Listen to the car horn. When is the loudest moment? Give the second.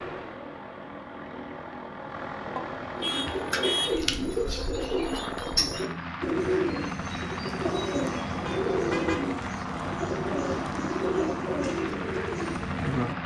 4 s.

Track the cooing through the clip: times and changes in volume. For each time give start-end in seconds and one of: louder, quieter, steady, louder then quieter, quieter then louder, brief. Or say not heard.
3.0-13.2 steady.